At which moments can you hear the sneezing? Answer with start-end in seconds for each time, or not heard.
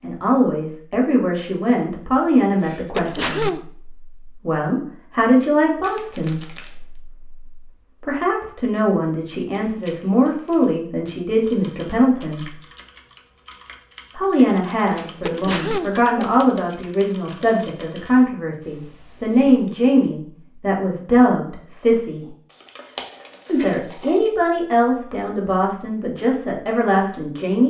2.6-3.6, 14.9-16.4.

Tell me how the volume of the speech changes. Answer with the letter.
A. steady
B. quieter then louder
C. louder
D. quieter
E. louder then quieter
A.